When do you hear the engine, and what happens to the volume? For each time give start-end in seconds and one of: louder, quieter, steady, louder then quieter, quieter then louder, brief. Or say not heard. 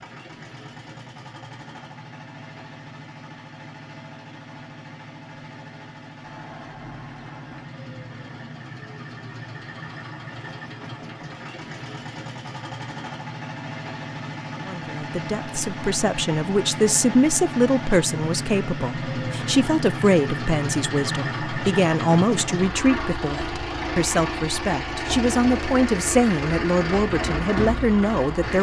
0.0-28.5 louder.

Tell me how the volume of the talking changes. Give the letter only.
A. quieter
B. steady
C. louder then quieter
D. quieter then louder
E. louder
B.